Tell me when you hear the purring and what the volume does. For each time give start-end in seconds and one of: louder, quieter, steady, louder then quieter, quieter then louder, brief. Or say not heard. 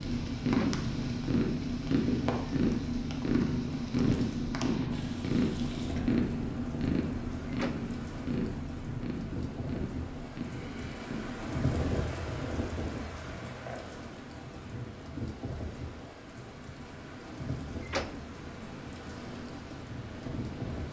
0.0-20.8 quieter.